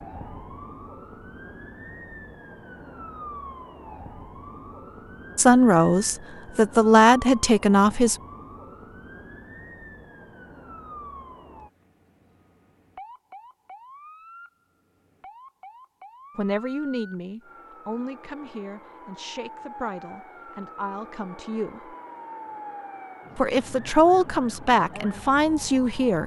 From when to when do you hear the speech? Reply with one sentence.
You can hear the speech from 5.3 to 8.2 s, from 16.4 to 21.9 s and from 23.4 to 26.2 s.